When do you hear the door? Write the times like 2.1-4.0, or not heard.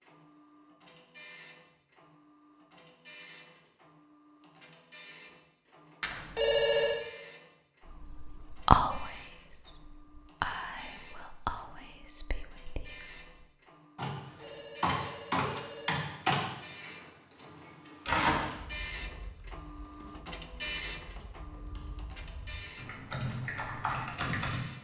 not heard.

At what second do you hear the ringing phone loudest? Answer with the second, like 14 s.
7 s.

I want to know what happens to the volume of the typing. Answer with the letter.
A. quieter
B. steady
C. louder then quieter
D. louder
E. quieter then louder
E.